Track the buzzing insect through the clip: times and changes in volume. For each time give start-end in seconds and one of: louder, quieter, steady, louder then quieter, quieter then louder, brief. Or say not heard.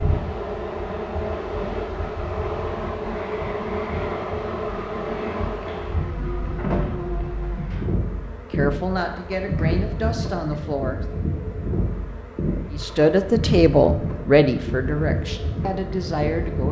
0.0-16.6 steady.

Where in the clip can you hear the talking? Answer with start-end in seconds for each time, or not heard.
8.6-11.0, 12.7-16.6.